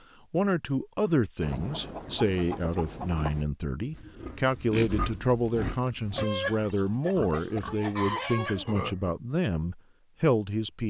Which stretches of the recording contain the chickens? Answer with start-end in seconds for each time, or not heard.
1.4-3.5, 6.2-8.8.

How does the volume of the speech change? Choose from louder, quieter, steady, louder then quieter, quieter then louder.
steady.